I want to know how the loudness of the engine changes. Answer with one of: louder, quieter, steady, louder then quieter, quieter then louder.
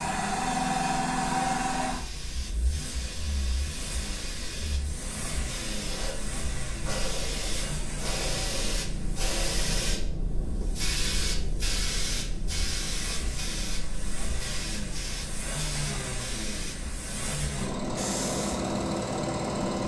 quieter then louder.